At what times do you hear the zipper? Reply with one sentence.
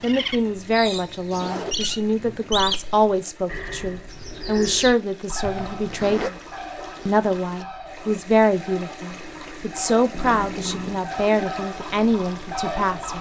You can hear the zipper from 1.3 to 2.6 s, from 5.4 to 6.3 s and from 10.1 to 11.0 s.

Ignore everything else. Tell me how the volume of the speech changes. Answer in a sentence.
The volume of the speech stays about the same.